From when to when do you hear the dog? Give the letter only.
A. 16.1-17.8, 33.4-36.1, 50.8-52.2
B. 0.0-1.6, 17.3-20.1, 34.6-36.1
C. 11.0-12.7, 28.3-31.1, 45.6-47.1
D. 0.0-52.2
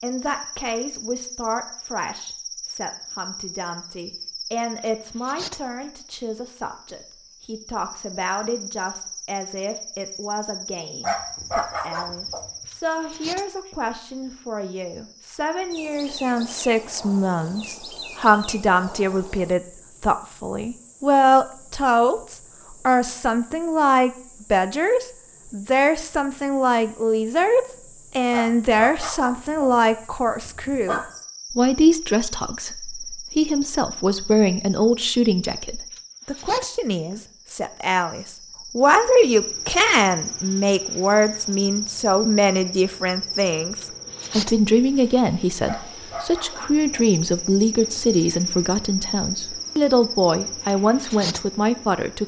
C.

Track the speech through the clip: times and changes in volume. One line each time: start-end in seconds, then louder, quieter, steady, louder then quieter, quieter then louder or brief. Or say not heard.
0.0-52.2 louder.